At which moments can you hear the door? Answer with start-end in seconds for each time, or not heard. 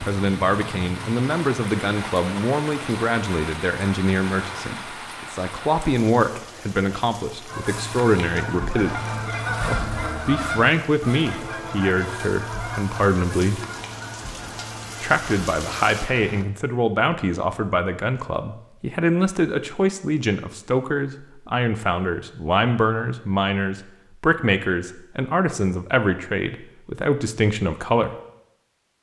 not heard.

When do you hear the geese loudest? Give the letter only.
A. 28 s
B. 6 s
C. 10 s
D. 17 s
C.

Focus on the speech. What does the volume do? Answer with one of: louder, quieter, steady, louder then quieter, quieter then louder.
steady.